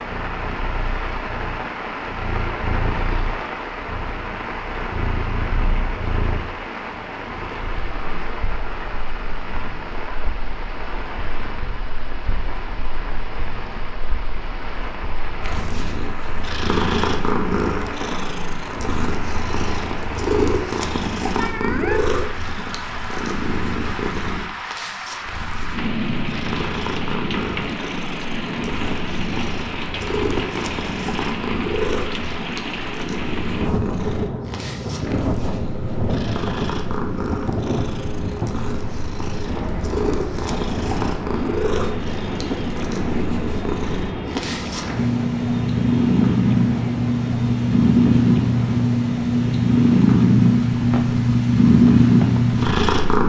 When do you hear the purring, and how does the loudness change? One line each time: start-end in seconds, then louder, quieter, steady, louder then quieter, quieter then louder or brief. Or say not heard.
0.0-53.2 louder.